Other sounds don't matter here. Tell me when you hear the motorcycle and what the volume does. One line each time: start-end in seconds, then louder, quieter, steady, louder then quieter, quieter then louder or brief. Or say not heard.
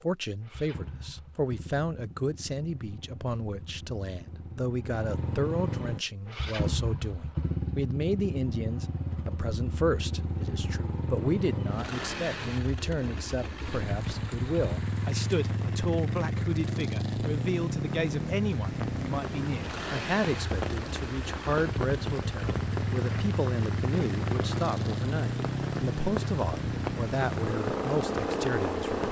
0.0-29.0 louder.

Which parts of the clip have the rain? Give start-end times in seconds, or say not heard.
13.7-29.0.